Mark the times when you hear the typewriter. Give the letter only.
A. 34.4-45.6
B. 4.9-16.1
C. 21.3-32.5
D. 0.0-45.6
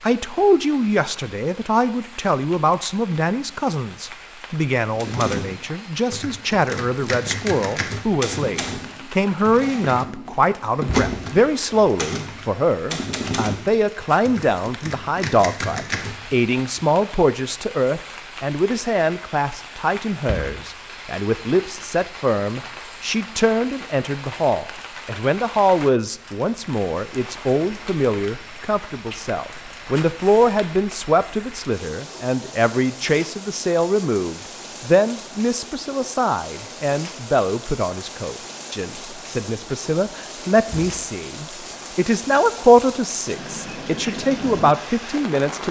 B.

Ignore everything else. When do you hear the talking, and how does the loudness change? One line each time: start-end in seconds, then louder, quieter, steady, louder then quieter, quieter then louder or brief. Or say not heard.
0.0-45.6 steady.